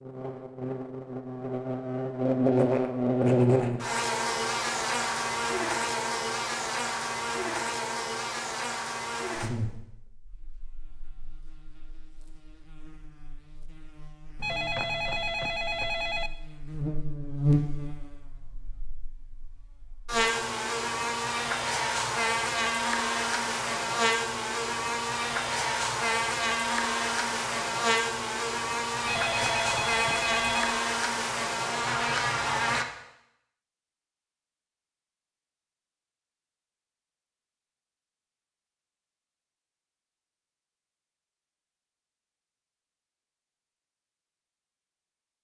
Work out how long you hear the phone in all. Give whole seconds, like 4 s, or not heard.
4 s.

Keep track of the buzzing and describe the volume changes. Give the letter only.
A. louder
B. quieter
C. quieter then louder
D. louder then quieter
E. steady
C.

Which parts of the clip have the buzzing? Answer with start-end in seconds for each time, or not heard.
0.0-32.9.